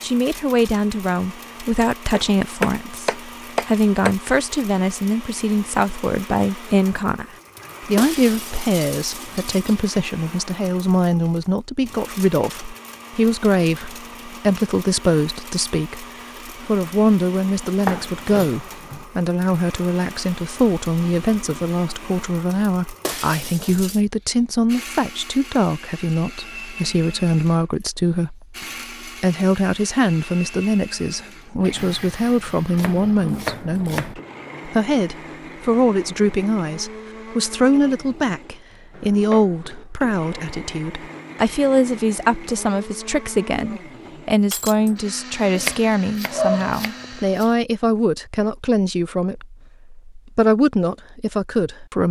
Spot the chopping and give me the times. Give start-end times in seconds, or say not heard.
2.1-4.2, 17.6-19.1, 32.8-34.1, 45.5-47.5.